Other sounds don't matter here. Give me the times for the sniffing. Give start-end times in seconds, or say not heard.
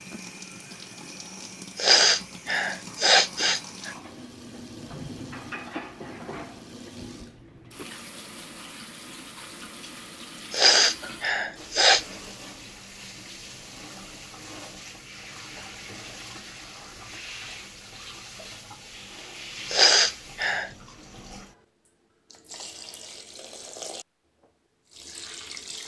1.8-4.0, 10.5-12.1, 19.7-20.7.